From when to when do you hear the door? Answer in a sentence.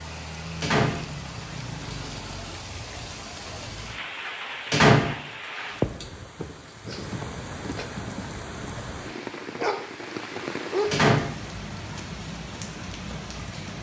The door can be heard from 0.6 to 1.9 s, from 4.7 to 6.0 s and from 10.9 to 11.3 s.